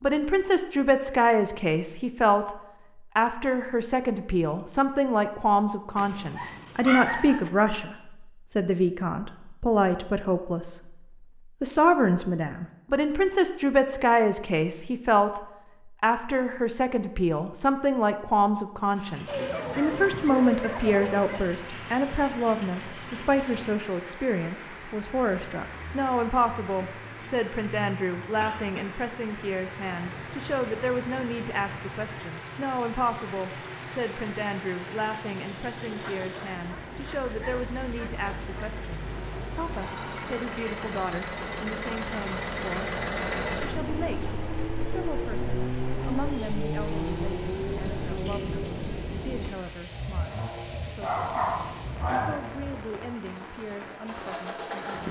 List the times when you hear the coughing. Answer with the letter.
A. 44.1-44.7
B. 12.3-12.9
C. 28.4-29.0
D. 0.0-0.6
C.